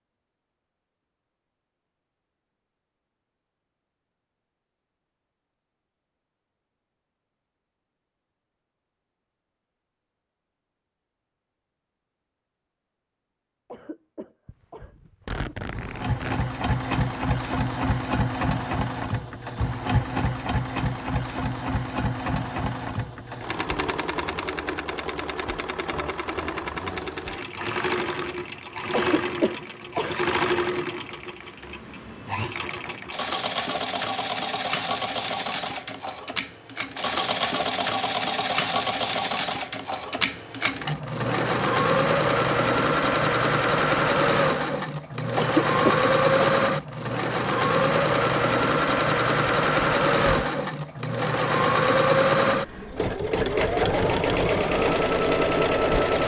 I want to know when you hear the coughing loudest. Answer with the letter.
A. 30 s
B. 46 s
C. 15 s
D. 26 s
B.